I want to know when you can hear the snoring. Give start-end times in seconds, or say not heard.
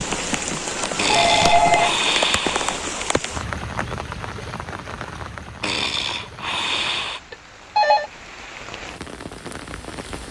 0.9-2.8, 5.6-7.2.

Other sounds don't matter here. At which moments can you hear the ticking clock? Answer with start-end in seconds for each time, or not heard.
not heard.